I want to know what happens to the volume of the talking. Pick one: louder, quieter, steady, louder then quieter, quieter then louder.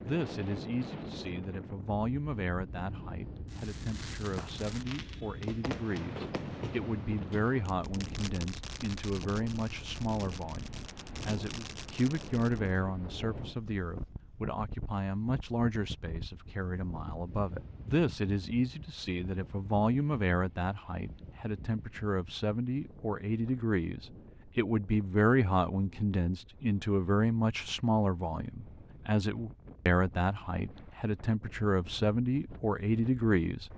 louder.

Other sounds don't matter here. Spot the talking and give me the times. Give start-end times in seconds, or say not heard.
0.0-33.7.